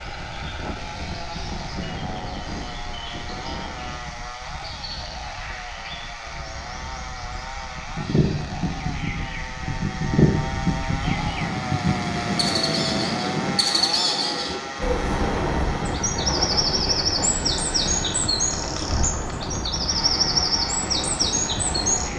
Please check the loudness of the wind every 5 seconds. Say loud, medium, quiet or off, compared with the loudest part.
medium, quiet, loud, loud, loud.